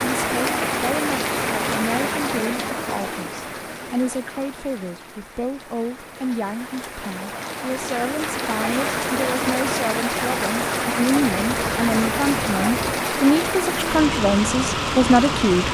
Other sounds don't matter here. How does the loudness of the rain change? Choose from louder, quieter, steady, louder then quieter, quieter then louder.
quieter then louder.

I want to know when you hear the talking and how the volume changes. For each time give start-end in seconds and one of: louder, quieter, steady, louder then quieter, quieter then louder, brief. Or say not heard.
0.0-15.6 louder.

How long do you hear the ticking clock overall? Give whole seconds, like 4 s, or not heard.
not heard.